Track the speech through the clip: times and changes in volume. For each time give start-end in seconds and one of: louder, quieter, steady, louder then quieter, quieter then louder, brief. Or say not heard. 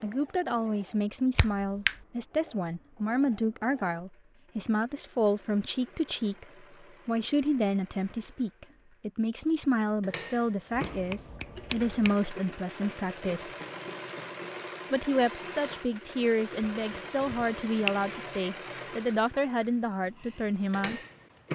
0.0-13.6 steady
14.9-21.0 steady.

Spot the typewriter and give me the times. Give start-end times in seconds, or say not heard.
not heard.